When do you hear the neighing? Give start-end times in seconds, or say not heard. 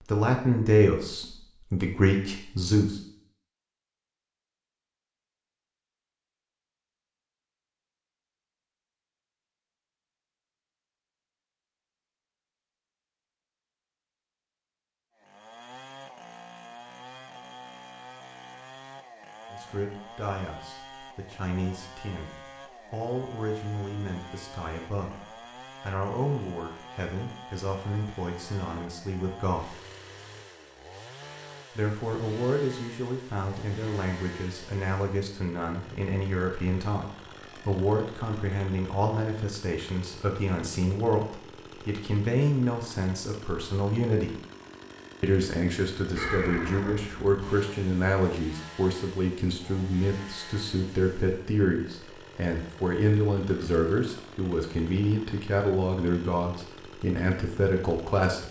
46.1-47.4.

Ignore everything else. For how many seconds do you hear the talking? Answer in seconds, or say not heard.
39 s.